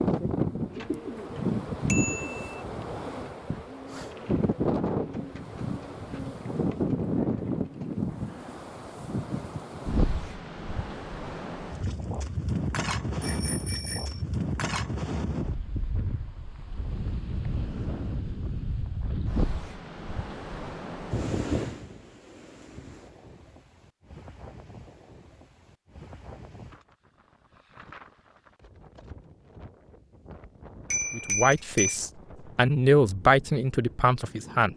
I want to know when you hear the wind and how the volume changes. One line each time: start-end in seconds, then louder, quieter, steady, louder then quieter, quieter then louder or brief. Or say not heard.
0.0-34.7 quieter.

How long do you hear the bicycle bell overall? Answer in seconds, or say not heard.
3 s.